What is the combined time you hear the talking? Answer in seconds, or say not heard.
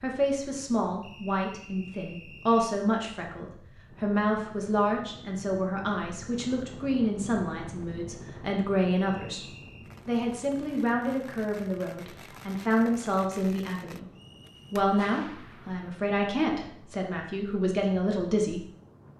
18 s.